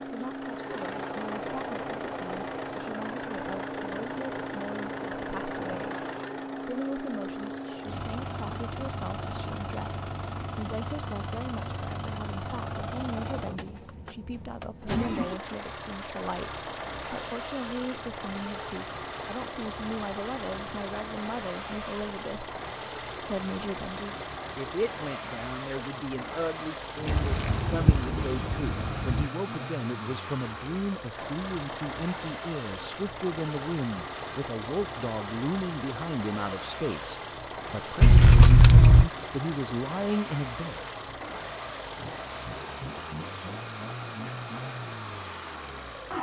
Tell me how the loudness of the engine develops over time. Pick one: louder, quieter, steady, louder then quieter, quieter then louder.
steady.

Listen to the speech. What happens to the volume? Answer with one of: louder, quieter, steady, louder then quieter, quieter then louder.
louder.